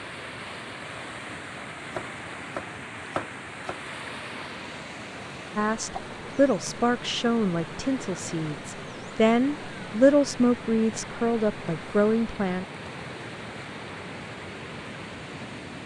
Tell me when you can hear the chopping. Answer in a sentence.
The chopping can be heard from 1.9 to 3.9 s.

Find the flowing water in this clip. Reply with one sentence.
The flowing water can be heard from 0.0 to 15.8 s.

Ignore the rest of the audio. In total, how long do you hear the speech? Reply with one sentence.
You can hear the speech for 7 seconds altogether.